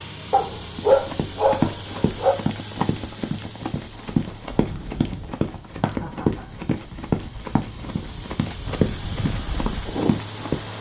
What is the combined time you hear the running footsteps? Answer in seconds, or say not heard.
10 s.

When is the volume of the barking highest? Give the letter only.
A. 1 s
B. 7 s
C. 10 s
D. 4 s
A.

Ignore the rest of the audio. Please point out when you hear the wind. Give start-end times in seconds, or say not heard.
3.9-10.7.